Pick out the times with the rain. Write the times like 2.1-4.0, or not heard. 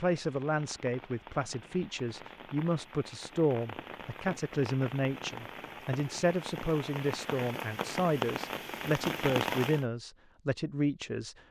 0.0-9.8.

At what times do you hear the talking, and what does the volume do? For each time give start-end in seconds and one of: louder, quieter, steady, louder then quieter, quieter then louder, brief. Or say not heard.
0.0-11.3 steady.